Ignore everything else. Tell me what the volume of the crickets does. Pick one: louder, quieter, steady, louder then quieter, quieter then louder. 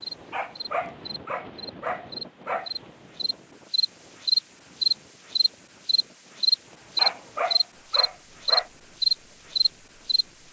louder.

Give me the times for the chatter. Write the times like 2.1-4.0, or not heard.
not heard.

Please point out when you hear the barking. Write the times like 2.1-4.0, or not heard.
0.3-2.7, 7.0-8.7.